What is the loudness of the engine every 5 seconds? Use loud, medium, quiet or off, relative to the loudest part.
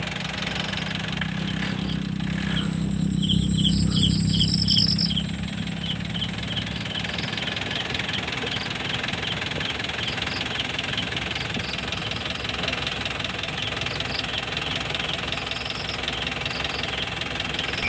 medium, loud, loud, loud.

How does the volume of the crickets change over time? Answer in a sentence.
The loudness of the crickets goes down.